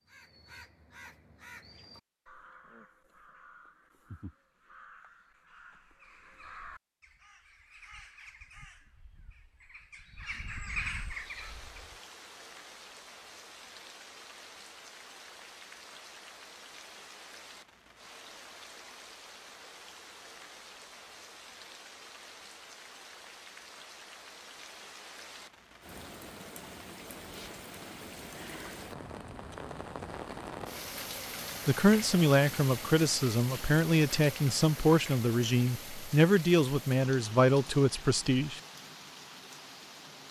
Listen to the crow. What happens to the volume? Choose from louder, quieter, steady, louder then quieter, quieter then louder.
louder.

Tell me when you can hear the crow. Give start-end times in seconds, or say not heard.
0.1-11.9.